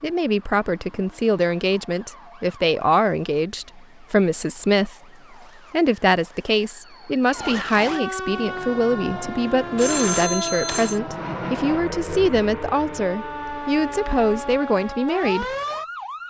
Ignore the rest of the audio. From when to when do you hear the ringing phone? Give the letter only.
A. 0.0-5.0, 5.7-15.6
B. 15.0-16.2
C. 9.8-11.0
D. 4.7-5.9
C.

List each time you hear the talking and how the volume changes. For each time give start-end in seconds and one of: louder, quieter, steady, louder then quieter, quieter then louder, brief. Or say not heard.
0.0-5.0 steady
5.7-15.6 steady.